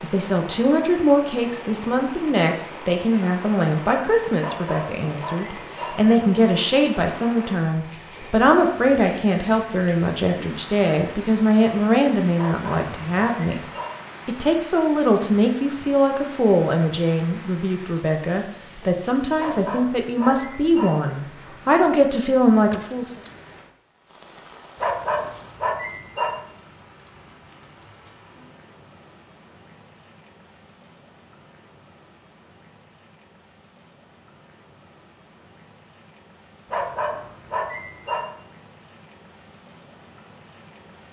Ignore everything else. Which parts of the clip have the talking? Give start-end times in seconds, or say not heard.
0.0-13.6, 14.2-23.1.